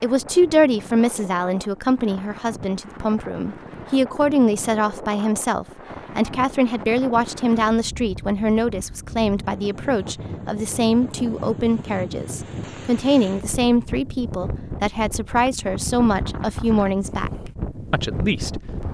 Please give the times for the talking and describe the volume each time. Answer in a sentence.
You can hear the talking from 0.0 to 17.3 s, at a steady volume; and briefly from 17.9 to 18.6 s.